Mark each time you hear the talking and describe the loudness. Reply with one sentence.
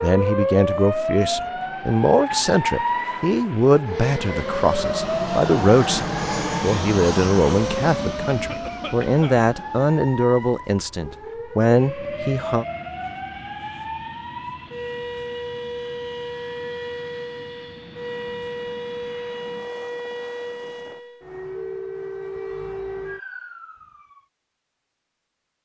You can hear the talking from 0.0 to 12.7 s, at a steady volume.